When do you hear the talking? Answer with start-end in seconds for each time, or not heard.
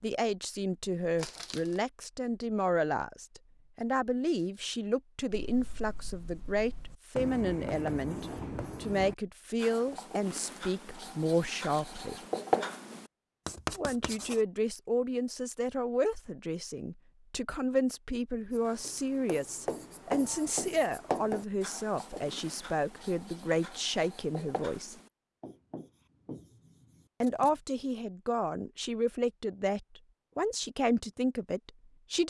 0.0-12.2, 13.8-24.9, 27.2-32.2.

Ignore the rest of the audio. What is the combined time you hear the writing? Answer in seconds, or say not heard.
18 s.